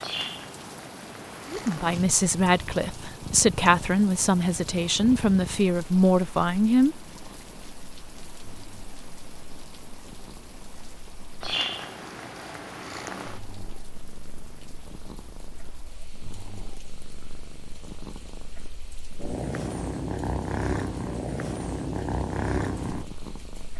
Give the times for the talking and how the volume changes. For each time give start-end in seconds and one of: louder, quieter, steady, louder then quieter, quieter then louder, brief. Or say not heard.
1.5-7.0 steady.